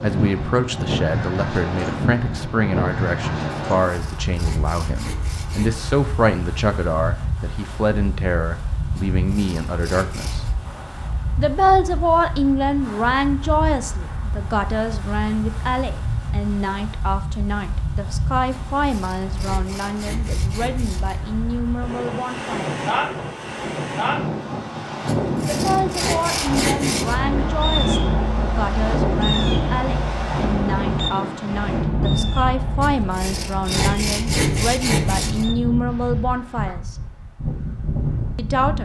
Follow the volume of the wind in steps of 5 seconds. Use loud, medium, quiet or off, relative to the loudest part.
loud, medium, medium, medium, loud, loud, loud, loud.